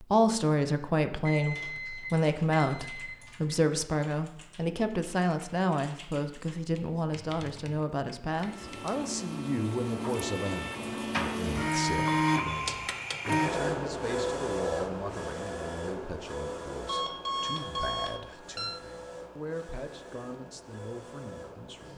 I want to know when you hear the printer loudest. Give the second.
12 s.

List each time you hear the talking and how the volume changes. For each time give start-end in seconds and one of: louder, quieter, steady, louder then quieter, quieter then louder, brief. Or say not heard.
0.0-21.9 quieter.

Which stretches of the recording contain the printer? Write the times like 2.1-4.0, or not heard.
8.3-21.9.